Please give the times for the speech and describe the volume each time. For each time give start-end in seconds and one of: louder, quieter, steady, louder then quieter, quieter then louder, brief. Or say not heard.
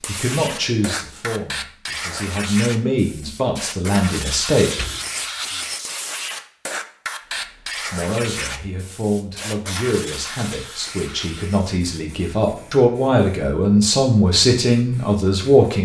0.1-4.7 quieter then louder
7.3-15.7 louder.